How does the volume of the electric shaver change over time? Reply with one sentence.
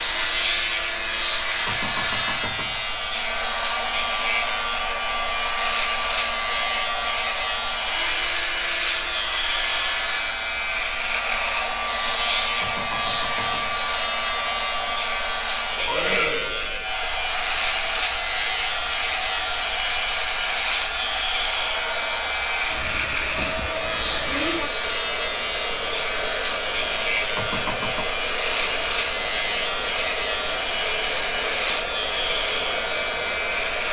The volume of the electric shaver stays about the same.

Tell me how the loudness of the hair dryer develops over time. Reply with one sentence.
The loudness of the hair dryer stays about the same.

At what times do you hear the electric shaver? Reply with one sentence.
The electric shaver can be heard from 0.0 to 33.8 s.